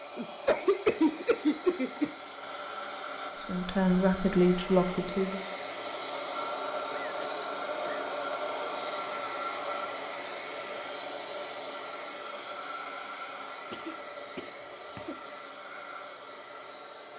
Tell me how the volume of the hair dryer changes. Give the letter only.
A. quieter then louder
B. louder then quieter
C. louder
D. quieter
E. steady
B.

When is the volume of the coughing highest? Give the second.
1 s.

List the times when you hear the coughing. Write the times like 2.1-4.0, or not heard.
0.1-2.1, 6.9-8.1, 13.7-15.2.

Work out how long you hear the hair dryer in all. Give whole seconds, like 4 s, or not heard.
17 s.